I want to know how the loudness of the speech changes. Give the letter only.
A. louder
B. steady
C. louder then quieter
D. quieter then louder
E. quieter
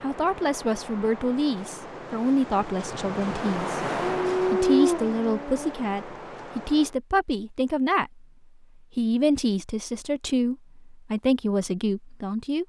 B.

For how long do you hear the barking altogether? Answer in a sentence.
You can hear the barking for 2 seconds altogether.